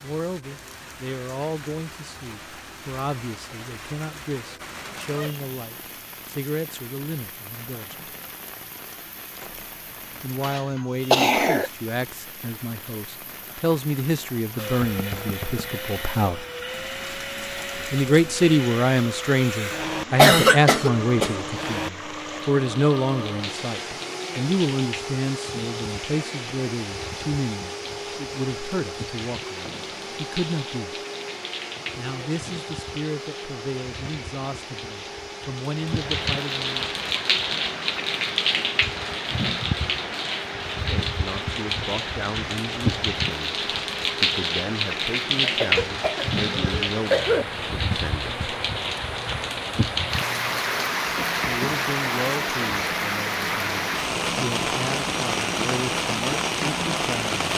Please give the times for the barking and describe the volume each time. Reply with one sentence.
You can't hear the barking here.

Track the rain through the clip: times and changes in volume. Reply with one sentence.
You can hear the rain from 0.0 to 57.5 s, getting louder.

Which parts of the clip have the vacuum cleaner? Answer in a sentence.
The vacuum cleaner can be heard from 14.6 to 57.5 s.